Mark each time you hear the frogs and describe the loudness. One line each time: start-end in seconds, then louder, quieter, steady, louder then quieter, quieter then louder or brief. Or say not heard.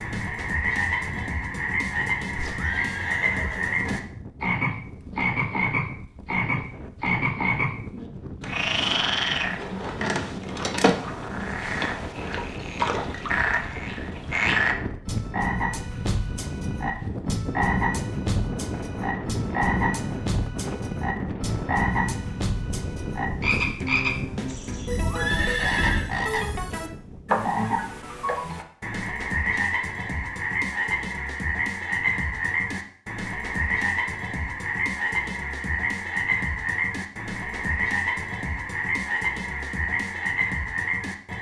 0.0-41.3 steady.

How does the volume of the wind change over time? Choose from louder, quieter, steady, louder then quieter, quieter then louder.
louder.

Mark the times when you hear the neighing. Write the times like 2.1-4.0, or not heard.
2.3-4.0, 24.4-26.1.